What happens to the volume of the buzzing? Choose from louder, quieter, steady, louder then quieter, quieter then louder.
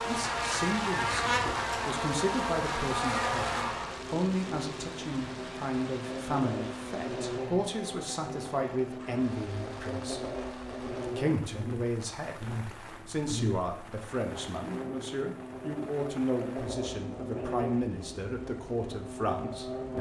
quieter.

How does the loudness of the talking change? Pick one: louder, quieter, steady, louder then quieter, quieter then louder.
steady.